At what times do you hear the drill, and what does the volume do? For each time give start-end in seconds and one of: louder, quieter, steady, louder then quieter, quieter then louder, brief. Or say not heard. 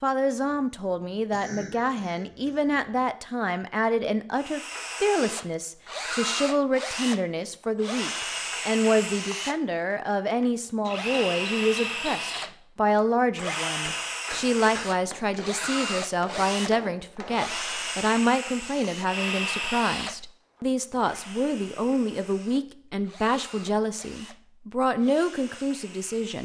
4.3-26.4 quieter.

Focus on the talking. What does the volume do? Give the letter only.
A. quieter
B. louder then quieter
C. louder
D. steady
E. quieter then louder
D.